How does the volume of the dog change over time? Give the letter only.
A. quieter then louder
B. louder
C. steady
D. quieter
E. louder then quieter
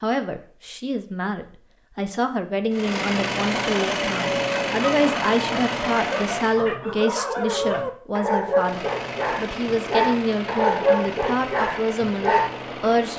B.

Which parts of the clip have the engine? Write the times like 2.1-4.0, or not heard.
2.7-6.7, 8.6-13.1.